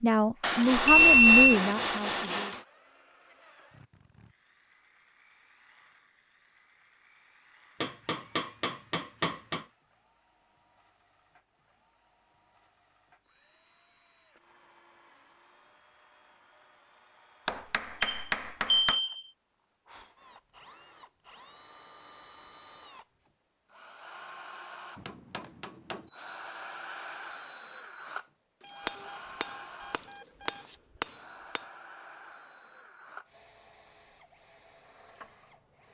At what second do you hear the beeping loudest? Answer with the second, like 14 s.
1 s.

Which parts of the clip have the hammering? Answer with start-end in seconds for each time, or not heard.
0.4-2.6, 7.8-9.7, 17.4-19.0, 24.9-26.1, 28.9-31.6.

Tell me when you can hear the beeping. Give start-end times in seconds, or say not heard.
0.8-1.6, 18.0-19.2, 28.6-30.8.